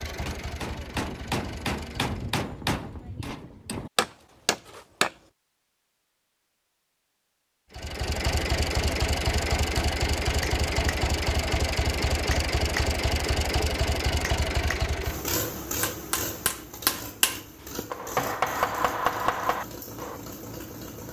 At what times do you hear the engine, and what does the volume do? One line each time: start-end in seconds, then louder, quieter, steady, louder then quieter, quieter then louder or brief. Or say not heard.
0.0-2.4 brief
7.7-21.0 quieter.